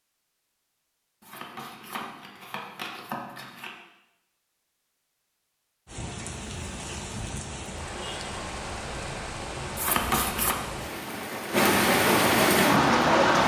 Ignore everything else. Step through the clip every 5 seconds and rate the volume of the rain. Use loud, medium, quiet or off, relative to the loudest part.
off, quiet, loud.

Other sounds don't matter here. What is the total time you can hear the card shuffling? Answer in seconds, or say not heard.
3 s.